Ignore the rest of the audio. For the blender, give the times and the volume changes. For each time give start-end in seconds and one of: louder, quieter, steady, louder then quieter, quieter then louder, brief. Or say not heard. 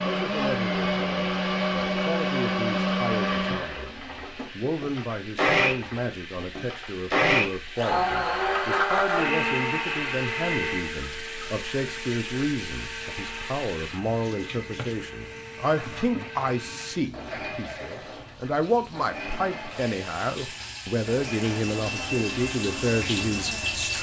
0.0-23.9 quieter.